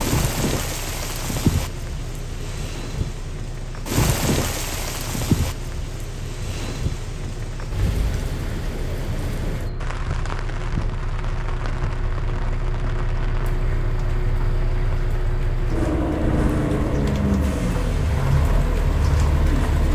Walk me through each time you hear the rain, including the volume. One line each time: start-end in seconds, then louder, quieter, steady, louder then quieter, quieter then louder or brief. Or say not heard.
0.0-19.9 quieter.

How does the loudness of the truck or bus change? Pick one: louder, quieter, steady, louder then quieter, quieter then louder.
louder.